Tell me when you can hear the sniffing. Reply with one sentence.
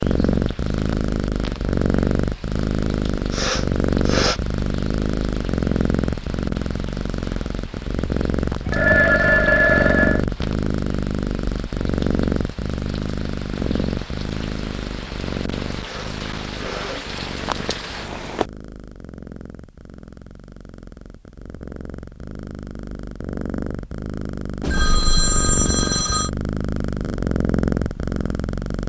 You can hear the sniffing from 3.3 to 4.4 s and from 15.8 to 17.1 s.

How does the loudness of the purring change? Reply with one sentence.
The volume of the purring goes down, then up.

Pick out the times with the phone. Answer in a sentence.
The phone can be heard from 8.7 to 10.2 s and from 24.6 to 26.3 s.